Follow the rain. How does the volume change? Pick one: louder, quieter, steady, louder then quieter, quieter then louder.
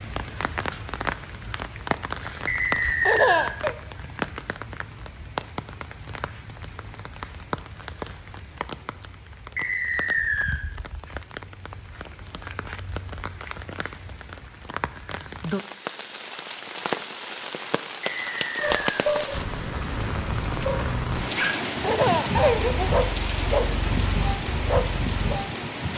quieter then louder.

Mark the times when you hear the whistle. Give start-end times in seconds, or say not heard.
2.5-3.5, 9.6-10.6, 18.0-19.1.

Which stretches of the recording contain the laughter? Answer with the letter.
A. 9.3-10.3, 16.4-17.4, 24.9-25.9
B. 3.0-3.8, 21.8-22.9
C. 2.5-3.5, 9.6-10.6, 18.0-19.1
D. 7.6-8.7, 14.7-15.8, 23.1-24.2
B.